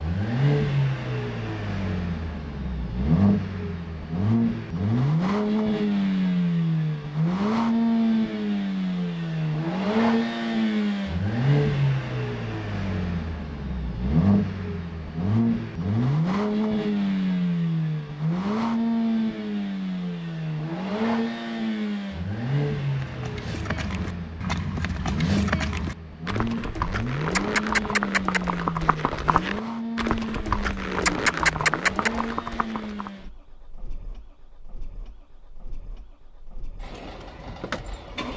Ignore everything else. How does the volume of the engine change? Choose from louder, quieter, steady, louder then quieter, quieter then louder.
quieter.